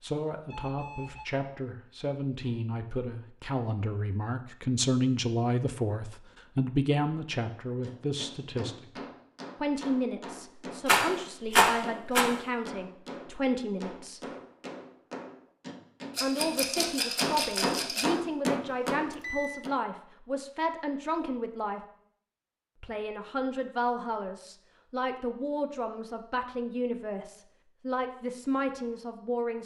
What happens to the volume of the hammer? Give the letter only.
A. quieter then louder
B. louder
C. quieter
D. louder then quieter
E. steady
B.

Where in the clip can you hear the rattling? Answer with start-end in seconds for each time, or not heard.
10.8-12.3, 16.1-18.1.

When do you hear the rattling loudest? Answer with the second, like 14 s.
12 s.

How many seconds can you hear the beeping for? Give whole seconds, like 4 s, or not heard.
2 s.